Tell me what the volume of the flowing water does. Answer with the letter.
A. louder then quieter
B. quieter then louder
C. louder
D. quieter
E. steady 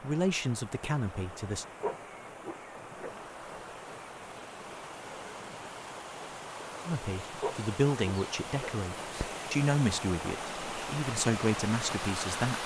C.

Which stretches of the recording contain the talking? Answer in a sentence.
You can hear the talking from 0.0 to 1.6 s and from 6.8 to 12.6 s.